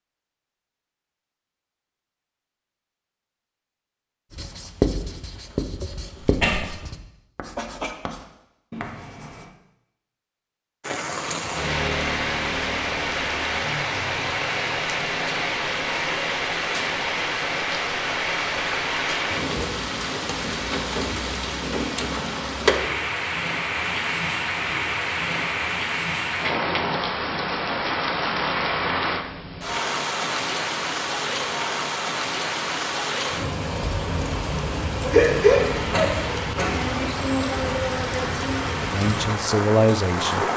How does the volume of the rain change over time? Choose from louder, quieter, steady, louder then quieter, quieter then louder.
steady.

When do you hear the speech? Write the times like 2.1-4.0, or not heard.
38.8-40.5.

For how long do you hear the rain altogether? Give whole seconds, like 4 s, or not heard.
30 s.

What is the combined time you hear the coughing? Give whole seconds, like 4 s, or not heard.
2 s.